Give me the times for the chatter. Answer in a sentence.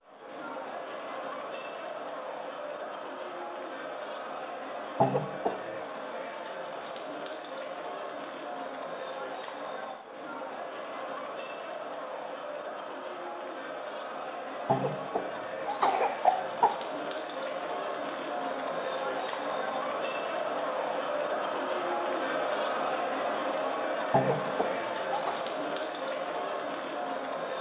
The chatter can be heard from 0.0 to 27.5 s.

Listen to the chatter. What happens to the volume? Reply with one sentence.
The loudness of the chatter goes up.